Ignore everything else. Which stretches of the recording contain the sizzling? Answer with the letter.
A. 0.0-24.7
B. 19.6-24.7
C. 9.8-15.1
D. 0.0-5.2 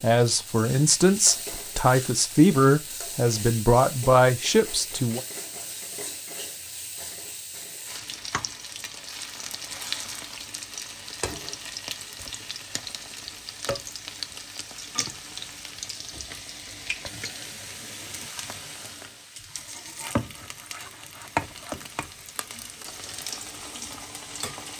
A.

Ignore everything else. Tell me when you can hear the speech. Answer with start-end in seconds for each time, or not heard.
0.0-5.2.